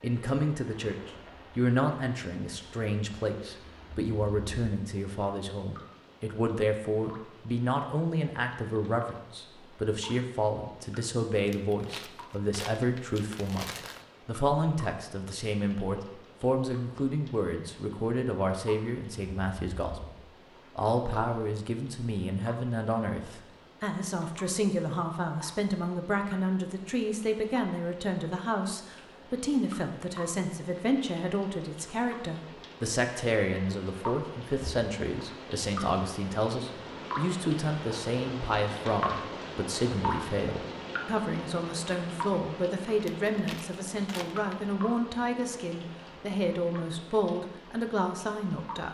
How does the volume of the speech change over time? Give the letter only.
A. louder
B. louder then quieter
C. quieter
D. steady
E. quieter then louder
D.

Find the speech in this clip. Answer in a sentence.
The speech can be heard from 0.0 to 48.9 s.